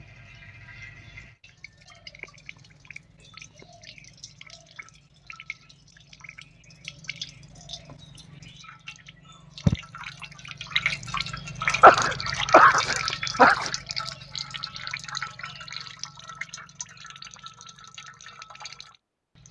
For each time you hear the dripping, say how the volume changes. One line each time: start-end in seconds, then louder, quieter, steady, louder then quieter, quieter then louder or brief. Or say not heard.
0.0-19.4 louder then quieter.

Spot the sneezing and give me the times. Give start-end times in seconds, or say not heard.
11.7-13.7.